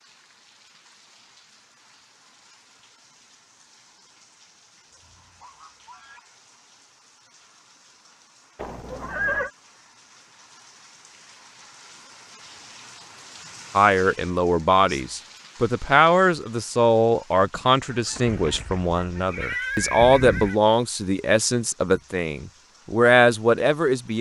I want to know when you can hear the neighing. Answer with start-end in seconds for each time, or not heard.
8.6-9.5, 18.2-20.6.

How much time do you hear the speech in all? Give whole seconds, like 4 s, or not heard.
10 s.